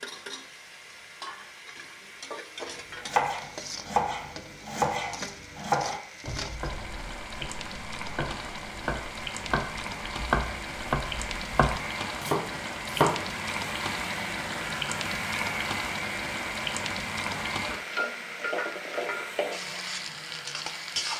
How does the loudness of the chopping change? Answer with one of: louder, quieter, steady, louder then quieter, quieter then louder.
quieter then louder.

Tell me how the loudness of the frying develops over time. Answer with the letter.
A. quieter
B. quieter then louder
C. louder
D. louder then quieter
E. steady
C.